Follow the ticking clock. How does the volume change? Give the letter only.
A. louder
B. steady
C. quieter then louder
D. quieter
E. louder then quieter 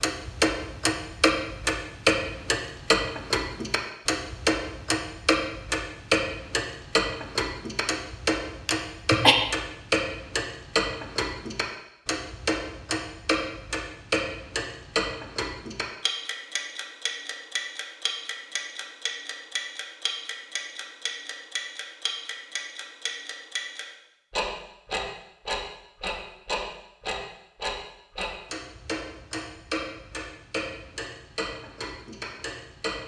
D.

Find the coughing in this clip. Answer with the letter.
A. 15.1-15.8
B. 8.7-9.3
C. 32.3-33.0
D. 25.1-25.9
B.